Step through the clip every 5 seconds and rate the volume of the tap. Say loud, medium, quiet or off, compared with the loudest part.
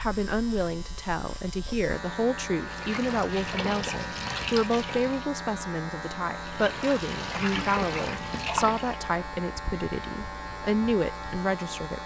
loud, loud, off.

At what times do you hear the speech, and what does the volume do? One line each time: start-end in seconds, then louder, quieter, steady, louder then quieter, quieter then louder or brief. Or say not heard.
0.0-12.0 steady.